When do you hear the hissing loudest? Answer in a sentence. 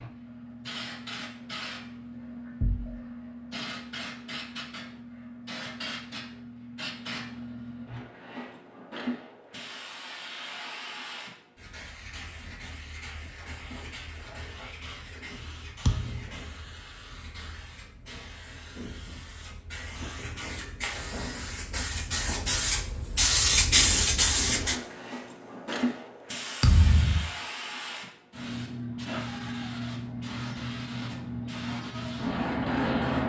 The loudest moment of the hissing is at 24 seconds.